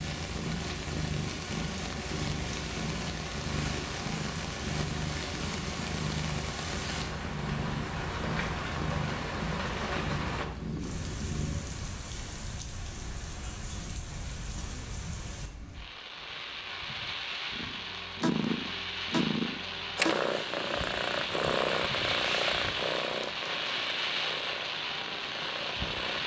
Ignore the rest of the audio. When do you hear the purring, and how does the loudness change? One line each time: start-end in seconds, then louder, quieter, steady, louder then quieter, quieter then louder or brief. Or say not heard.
0.0-11.8 steady
17.5-26.2 quieter.